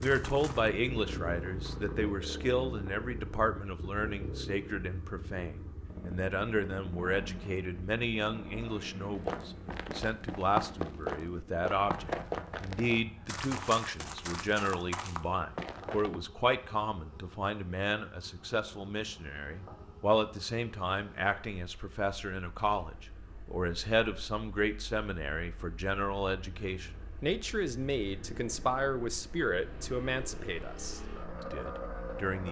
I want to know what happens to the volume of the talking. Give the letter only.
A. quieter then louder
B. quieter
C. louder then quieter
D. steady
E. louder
D.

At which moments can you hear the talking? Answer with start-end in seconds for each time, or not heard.
0.0-32.4.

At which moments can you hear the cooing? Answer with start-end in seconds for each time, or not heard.
not heard.